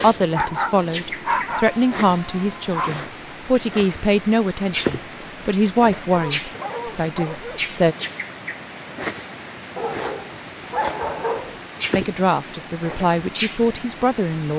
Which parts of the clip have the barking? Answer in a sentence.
You can hear the barking from 0.3 to 3.0 s, from 6.1 to 7.7 s and from 9.8 to 11.6 s.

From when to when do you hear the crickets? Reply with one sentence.
You can hear the crickets from 0.0 to 14.5 s.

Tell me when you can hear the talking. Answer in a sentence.
You can hear the talking from 0.0 to 8.0 s and from 11.9 to 14.5 s.